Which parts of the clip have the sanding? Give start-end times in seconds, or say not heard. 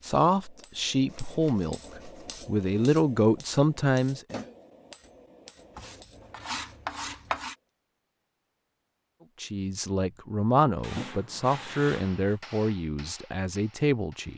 1.1-2.9, 5.8-7.5, 10.8-12.3.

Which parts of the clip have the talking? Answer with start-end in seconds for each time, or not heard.
0.0-4.5, 9.4-14.3.